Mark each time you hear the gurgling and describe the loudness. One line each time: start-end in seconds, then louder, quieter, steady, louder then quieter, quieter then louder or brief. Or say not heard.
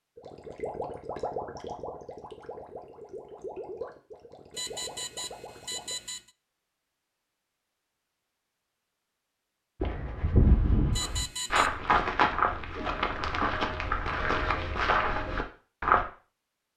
0.1-6.0 quieter.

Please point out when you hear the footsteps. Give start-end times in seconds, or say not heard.
9.8-16.1.